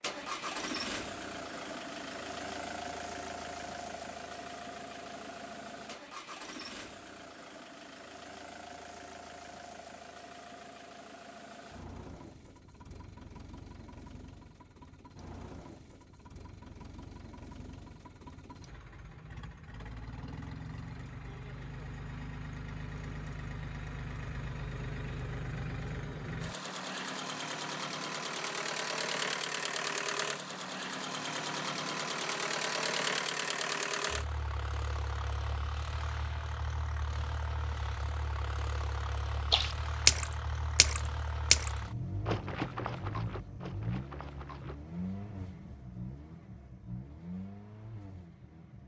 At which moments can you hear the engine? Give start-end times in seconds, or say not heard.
0.0-48.8.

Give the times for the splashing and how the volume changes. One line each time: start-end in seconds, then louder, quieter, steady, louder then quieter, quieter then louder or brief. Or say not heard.
39.5-44.8 quieter.